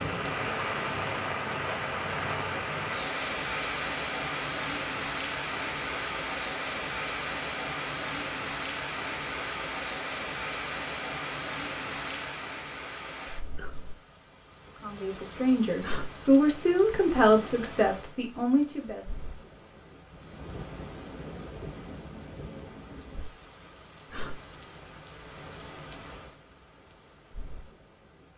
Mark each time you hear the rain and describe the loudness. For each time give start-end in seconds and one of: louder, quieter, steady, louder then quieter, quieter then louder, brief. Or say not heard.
0.0-28.3 quieter.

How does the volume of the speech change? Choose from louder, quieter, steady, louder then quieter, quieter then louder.
louder then quieter.